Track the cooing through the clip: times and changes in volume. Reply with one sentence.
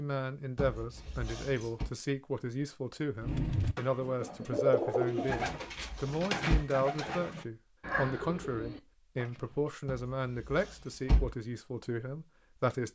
You can hear the cooing from 3.2 to 9.6 s, getting quieter.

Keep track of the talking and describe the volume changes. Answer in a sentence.
The loudness of the talking stays about the same.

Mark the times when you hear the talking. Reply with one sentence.
You can hear the talking from 0.0 to 12.9 s.